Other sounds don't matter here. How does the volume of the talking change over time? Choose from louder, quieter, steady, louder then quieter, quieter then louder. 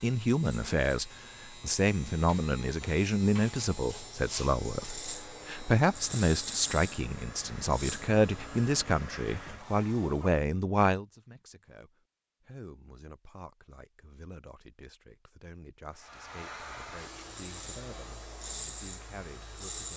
quieter.